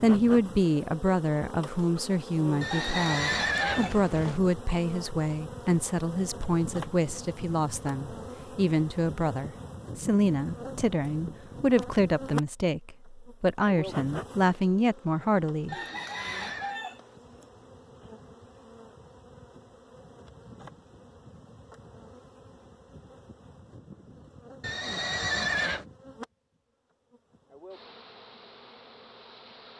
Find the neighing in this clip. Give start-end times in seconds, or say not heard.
2.6-4.4, 15.7-16.8, 24.6-25.9.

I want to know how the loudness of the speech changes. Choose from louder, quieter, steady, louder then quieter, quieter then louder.
steady.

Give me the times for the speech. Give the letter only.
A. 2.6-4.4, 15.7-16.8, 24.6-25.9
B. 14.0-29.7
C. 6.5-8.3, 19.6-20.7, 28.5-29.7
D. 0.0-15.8
D.